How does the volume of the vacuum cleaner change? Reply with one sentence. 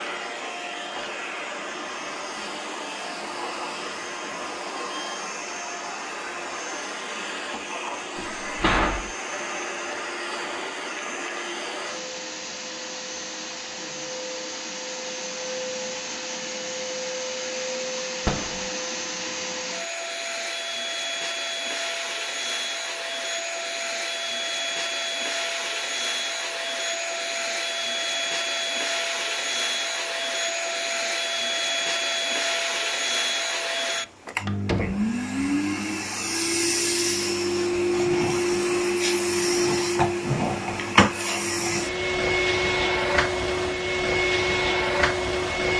The volume of the vacuum cleaner goes up.